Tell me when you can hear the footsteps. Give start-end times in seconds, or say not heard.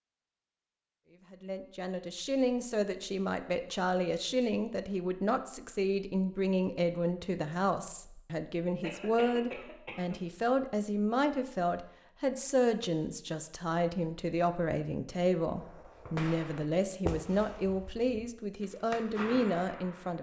not heard.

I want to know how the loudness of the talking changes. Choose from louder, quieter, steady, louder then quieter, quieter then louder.
steady.